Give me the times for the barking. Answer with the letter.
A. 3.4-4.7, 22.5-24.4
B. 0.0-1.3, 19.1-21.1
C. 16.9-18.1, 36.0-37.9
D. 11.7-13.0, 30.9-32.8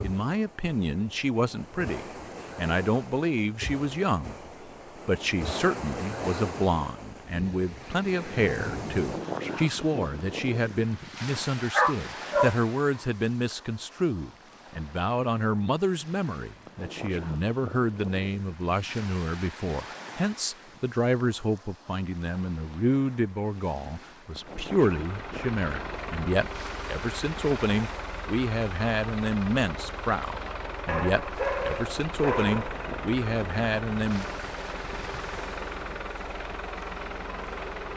D.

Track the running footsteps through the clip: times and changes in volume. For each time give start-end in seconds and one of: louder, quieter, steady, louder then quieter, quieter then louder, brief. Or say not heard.
not heard.